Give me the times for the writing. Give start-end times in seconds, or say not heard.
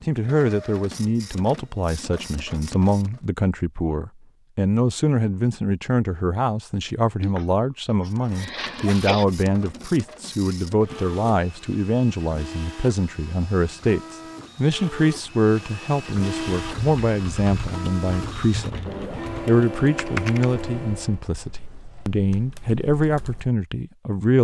not heard.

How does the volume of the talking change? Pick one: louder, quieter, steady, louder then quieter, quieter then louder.
steady.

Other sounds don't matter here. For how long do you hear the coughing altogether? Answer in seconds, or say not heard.
2 s.